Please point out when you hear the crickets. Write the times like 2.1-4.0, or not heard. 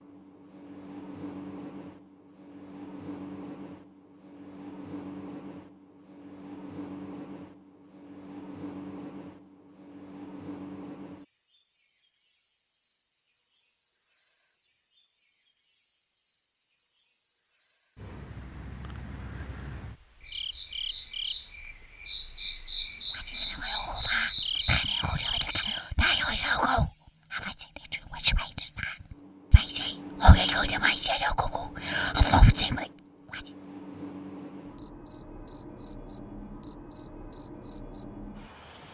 0.0-38.8.